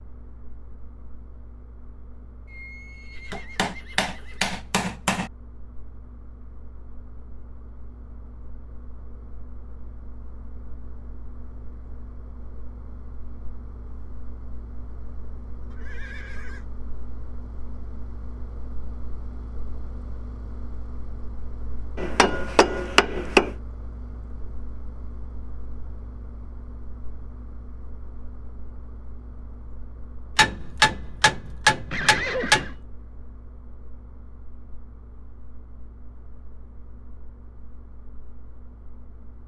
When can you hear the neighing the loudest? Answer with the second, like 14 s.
32 s.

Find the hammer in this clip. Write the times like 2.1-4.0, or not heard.
3.3-5.3, 21.9-23.5, 30.4-32.7.